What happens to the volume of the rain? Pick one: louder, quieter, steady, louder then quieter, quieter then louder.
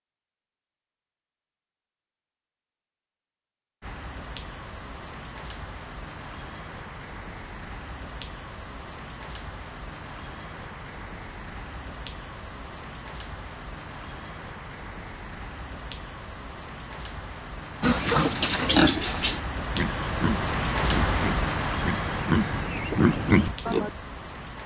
louder.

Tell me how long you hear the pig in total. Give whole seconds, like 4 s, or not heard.
6 s.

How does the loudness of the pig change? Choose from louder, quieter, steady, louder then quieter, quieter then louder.
quieter then louder.